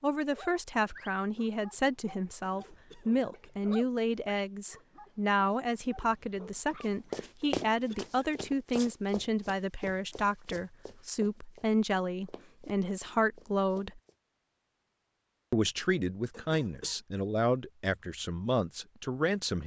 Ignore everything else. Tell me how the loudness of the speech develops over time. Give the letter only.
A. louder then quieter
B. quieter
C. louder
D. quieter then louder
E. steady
E.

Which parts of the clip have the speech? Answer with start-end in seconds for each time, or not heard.
0.0-14.0, 15.5-19.6.